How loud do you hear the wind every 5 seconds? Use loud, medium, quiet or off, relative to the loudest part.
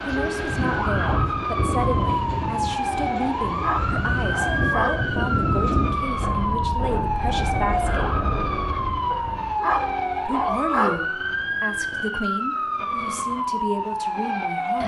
loud, loud, off.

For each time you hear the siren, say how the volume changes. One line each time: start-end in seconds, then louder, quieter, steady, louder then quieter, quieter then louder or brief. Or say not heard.
0.0-14.8 steady.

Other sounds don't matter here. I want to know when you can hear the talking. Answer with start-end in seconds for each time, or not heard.
0.0-8.2, 10.2-14.8.